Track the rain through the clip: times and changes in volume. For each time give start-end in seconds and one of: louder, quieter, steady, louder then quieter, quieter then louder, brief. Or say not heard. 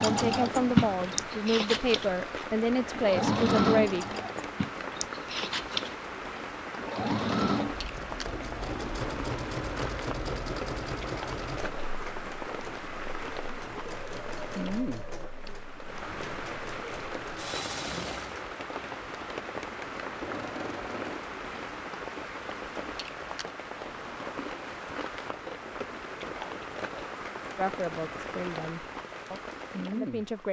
0.2-30.4 steady.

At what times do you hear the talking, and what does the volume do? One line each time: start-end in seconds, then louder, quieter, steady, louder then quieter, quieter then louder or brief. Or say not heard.
0.0-4.2 steady
27.6-30.4 brief.